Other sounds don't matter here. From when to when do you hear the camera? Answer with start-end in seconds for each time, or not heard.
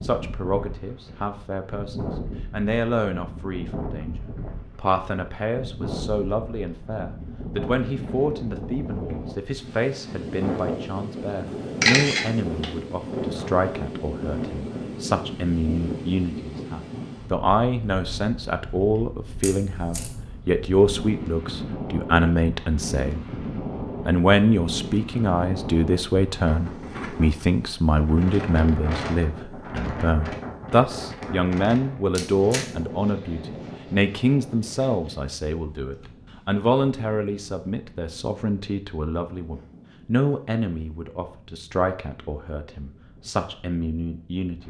11.8-12.8, 19.4-20.1, 32.1-32.6.